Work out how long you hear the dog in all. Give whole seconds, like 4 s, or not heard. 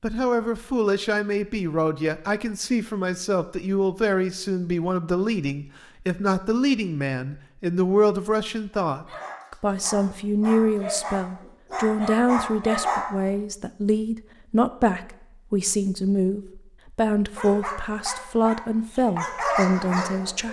7 s.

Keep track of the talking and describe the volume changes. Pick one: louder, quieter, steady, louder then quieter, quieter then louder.
steady.